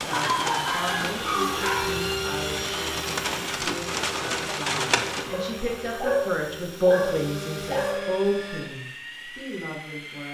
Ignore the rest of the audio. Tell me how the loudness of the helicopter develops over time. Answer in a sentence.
The volume of the helicopter goes down.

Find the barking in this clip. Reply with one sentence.
You can hear the barking from 0.1 to 1.9 s and from 5.3 to 8.1 s.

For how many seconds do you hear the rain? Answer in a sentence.
You can hear the rain for 5 seconds altogether.